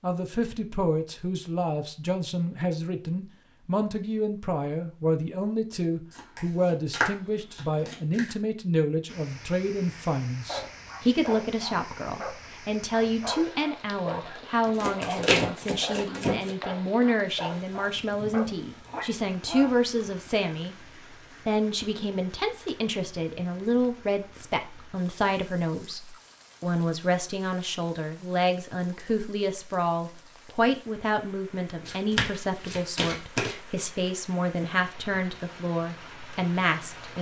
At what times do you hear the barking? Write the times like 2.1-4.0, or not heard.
10.4-19.7.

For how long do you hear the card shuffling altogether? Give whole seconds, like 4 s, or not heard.
6 s.